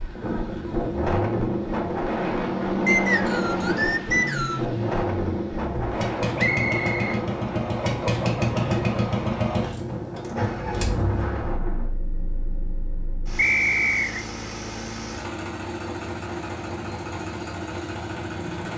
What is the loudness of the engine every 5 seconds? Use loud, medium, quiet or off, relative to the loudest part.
medium, loud, medium, medium.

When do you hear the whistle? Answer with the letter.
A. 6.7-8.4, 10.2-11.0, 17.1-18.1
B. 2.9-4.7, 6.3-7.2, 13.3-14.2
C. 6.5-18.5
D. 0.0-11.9
B.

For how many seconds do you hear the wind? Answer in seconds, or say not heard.
12 s.